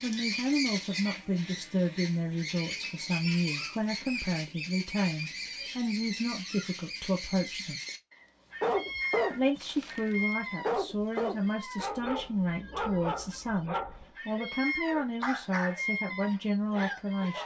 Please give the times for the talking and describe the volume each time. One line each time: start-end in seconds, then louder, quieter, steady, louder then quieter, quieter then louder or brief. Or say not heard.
0.0-7.8 steady
9.3-17.4 steady.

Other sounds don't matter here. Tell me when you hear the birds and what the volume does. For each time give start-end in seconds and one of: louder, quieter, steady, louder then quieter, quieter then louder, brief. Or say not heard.
0.0-17.4 quieter then louder.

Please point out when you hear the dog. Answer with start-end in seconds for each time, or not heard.
8.6-10.0, 10.6-17.4.